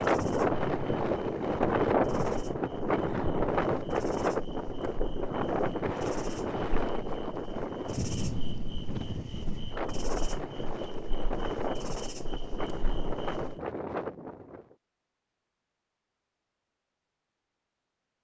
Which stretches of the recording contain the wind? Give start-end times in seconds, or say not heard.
0.0-14.8.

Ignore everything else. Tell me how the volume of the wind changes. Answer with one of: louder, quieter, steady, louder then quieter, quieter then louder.
quieter.